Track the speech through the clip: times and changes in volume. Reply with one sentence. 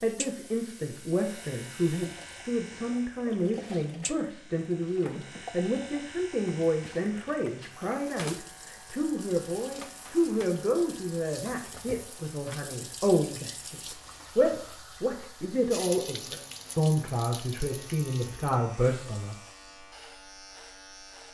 You can hear the speech from 0.0 to 19.4 s, at a steady volume.